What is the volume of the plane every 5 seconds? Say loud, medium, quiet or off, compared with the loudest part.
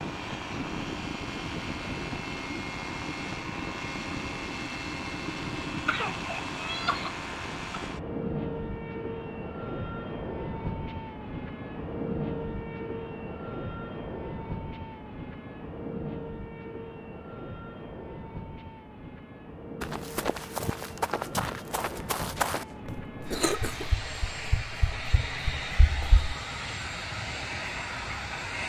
loud, loud, loud, medium, medium, loud.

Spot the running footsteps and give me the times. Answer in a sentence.
The running footsteps can be heard from 19.8 to 26.4 s.